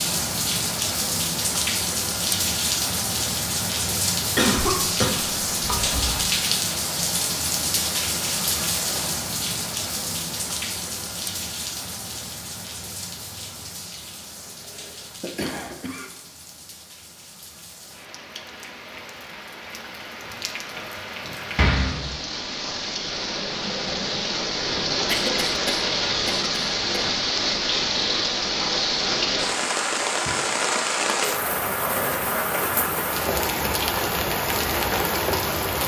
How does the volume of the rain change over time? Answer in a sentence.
The loudness of the rain goes down, then up.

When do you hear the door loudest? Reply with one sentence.
The loudest moment of the door is at 22 seconds.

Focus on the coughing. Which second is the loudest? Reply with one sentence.
The loudest moment of the coughing is at 5 seconds.